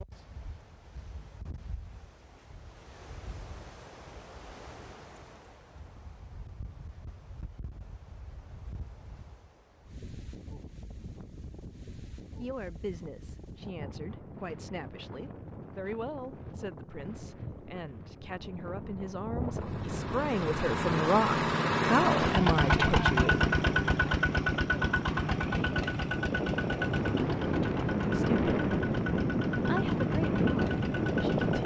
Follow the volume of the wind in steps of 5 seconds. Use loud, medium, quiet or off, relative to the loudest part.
quiet, quiet, quiet, quiet, medium, loud, loud.